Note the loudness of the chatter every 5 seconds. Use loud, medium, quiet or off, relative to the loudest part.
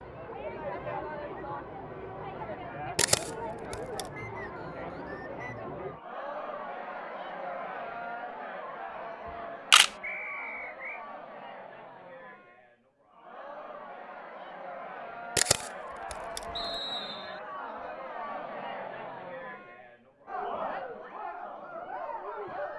loud, loud, medium, loud, loud.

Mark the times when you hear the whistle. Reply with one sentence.
The whistle can be heard from 4.2 to 5.7 s, from 10.0 to 11.1 s and from 16.6 to 17.4 s.